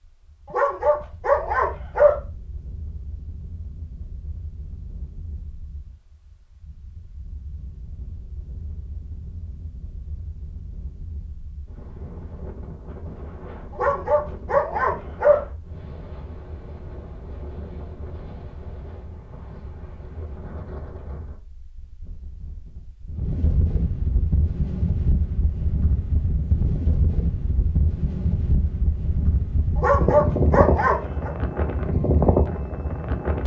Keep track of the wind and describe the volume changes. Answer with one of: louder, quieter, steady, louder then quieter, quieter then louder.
louder.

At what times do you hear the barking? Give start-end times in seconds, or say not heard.
0.5-2.1, 13.8-15.4, 29.8-31.3.